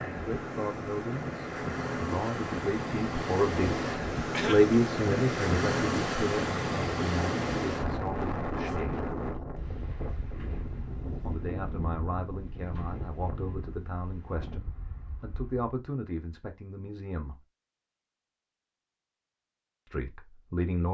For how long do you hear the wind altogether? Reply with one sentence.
You can hear the wind for 16 seconds altogether.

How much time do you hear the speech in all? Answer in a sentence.
The speech can be heard for 16 seconds in total.